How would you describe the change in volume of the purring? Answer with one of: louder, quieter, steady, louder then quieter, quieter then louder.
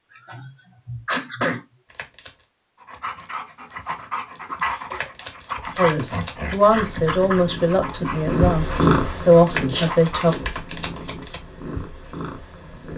louder then quieter.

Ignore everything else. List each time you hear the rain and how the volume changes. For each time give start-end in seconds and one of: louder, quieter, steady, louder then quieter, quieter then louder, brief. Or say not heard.
not heard.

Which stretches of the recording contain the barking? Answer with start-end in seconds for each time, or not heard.
2.8-10.3.